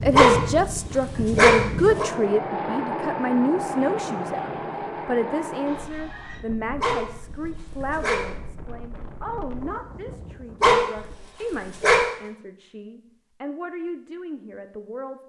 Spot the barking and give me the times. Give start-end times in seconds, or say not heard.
0.1-2.0, 6.8-8.2, 10.6-12.1.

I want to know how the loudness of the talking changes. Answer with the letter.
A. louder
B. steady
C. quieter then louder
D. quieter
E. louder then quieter
D.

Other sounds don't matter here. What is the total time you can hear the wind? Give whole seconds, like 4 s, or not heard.
11 s.